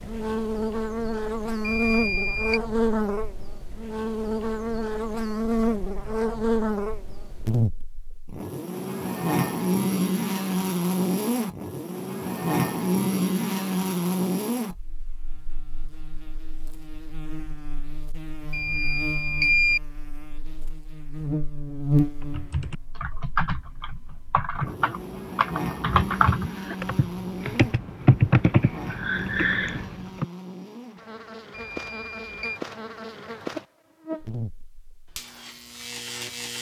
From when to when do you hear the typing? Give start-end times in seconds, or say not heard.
22.2-30.2.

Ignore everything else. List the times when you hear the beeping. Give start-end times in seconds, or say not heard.
1.6-2.6, 18.5-19.8, 31.5-32.6.